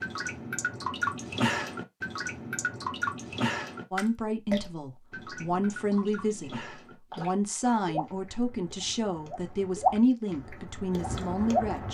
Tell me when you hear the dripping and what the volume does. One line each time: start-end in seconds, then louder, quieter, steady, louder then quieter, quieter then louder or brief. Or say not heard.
0.0-11.8 quieter then louder.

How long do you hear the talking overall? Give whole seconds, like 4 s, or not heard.
8 s.